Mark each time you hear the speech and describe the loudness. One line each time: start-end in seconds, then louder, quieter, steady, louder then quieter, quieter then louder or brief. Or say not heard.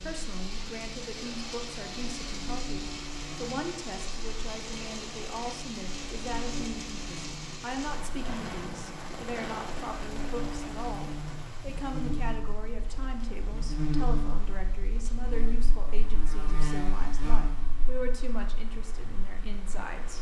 0.0-20.1 steady.